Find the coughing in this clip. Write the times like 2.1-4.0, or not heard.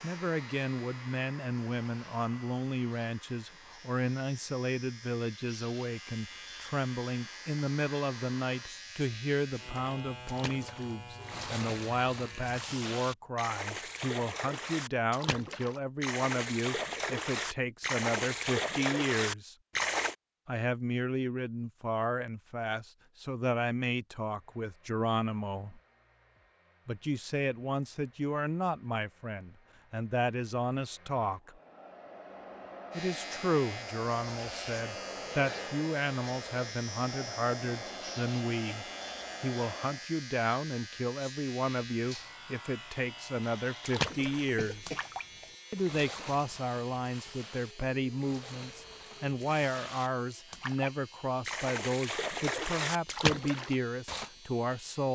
44.4-45.5.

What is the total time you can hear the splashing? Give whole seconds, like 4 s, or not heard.
21 s.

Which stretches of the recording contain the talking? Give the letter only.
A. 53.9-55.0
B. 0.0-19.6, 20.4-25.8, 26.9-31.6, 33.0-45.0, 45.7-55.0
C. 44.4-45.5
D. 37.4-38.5
B.